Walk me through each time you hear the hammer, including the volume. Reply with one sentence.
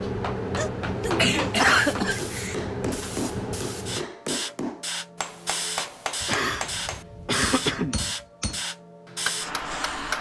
You can hear the hammer from 0.0 to 10.1 s, at a steady volume.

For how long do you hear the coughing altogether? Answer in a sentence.
You can hear the coughing for 4 seconds altogether.